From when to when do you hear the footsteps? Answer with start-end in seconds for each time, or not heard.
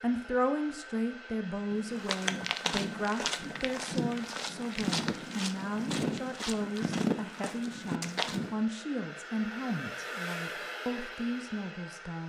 1.7-8.7.